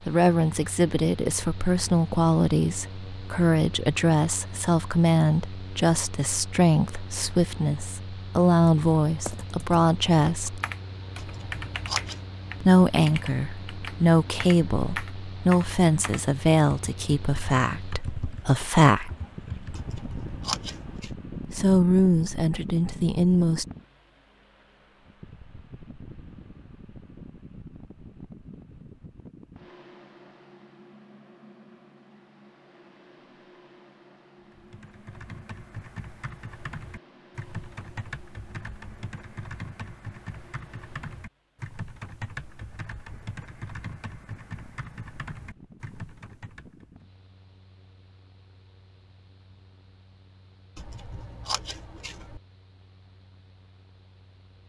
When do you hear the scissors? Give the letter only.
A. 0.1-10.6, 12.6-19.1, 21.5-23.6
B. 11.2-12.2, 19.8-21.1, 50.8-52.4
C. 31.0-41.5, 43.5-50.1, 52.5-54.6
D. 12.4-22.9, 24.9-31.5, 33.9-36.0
B.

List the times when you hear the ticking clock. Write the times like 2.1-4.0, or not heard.
not heard.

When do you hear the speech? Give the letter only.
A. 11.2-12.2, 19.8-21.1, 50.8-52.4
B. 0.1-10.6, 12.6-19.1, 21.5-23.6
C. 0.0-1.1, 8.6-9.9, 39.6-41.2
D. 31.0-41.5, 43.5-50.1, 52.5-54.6
B.